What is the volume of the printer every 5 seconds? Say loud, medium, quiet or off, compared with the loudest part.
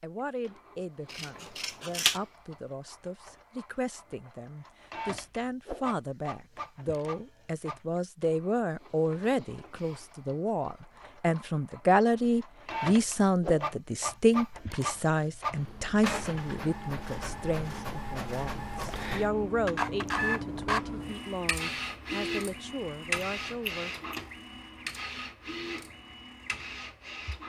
quiet, medium, medium, loud, loud, medium.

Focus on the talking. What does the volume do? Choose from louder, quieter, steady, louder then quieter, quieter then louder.
louder then quieter.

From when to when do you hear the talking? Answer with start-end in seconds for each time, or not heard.
0.0-23.9.